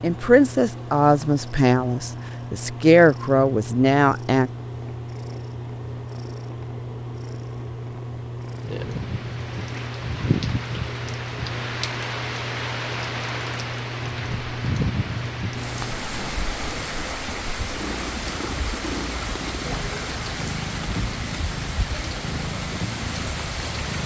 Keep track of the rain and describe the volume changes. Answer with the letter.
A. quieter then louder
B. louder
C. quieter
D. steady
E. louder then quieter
D.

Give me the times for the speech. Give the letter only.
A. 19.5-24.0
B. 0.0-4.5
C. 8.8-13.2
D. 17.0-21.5
B.